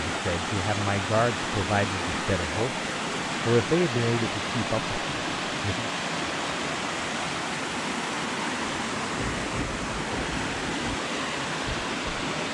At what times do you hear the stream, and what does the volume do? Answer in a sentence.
You can hear the stream from 0.0 to 12.4 s, at a steady volume.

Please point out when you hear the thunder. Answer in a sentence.
The thunder can be heard from 9.1 to 10.9 s.